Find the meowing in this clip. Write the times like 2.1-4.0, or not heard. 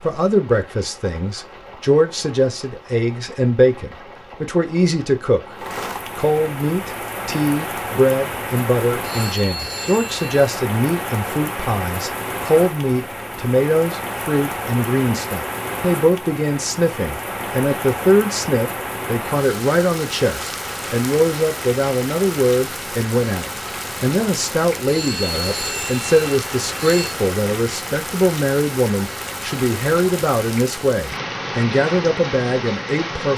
not heard.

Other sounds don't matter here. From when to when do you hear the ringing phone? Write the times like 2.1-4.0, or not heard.
9.0-10.5, 24.9-27.1.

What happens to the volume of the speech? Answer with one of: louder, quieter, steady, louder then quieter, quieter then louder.
steady.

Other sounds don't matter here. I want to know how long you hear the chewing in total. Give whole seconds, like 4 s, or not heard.
not heard.